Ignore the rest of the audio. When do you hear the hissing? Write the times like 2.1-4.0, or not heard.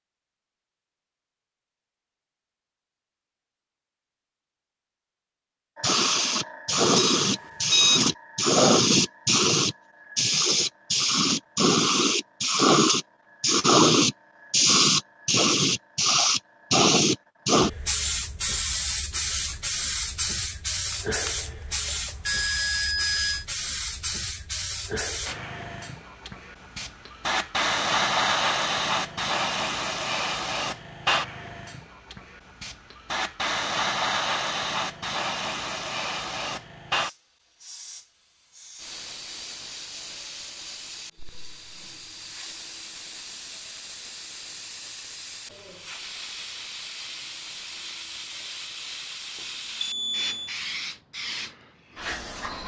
5.8-52.6.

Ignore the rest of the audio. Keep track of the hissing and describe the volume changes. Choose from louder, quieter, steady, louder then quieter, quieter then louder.
quieter.